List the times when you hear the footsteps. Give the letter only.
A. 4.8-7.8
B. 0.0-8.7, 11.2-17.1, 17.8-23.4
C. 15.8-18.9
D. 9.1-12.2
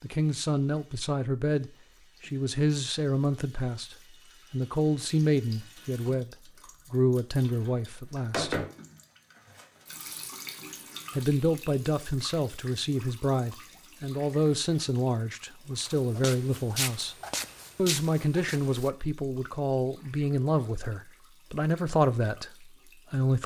C.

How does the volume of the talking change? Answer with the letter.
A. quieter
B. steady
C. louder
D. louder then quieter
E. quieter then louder
B.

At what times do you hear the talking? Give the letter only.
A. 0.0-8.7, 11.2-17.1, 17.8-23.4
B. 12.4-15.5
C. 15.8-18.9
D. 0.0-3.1
A.